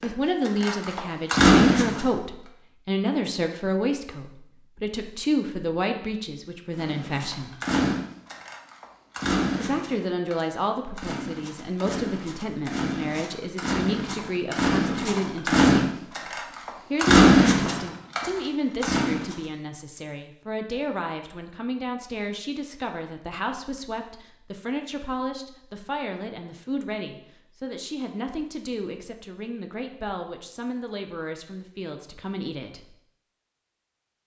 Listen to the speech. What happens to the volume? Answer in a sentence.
The volume of the speech goes down.